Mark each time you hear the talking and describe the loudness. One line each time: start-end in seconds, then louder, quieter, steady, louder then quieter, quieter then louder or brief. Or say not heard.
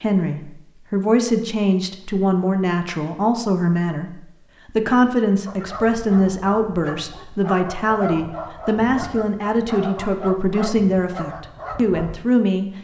0.0-12.7 steady.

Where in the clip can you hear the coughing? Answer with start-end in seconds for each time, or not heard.
not heard.